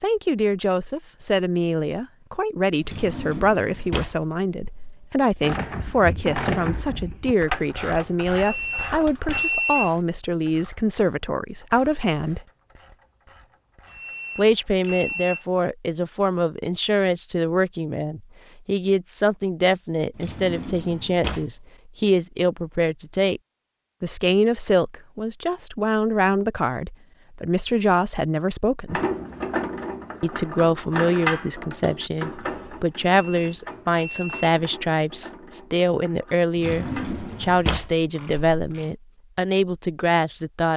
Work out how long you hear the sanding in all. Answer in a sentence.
The sanding can't be heard in this clip.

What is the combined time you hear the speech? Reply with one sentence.
The speech can be heard for 37 seconds in total.